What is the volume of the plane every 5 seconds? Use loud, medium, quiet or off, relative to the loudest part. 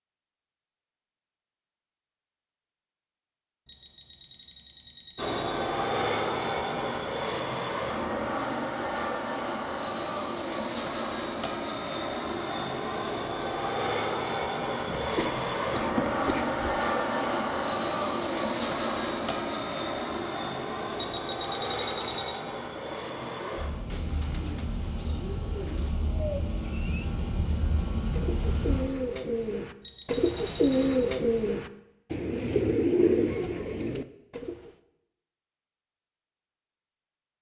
off, loud, loud, loud, medium, medium, off, off.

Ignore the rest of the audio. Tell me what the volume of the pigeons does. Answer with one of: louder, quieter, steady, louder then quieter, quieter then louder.
louder.